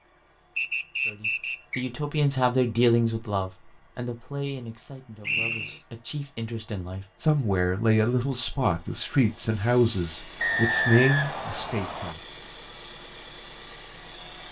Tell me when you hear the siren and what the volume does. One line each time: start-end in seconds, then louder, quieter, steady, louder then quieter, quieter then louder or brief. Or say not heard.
not heard.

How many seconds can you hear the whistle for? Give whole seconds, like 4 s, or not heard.
4 s.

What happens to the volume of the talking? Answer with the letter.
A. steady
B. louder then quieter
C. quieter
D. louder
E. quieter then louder
E.